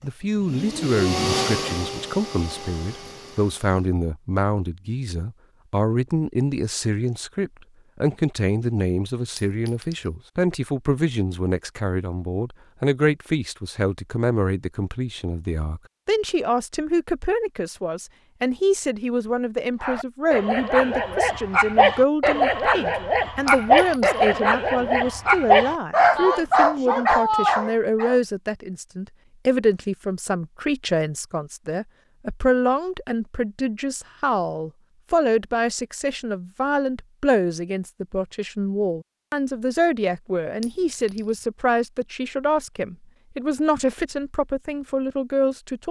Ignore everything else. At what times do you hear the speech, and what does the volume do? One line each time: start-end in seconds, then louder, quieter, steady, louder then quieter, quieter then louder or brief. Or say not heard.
0.0-45.8 steady.